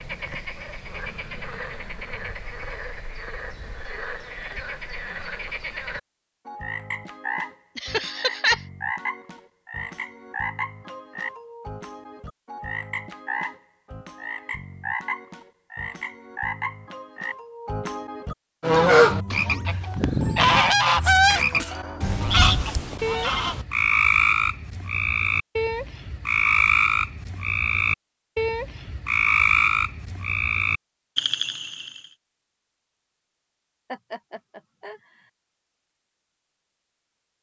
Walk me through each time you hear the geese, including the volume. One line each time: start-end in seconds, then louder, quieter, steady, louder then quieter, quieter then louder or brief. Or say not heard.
18.6-23.6 quieter.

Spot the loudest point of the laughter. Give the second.
8 s.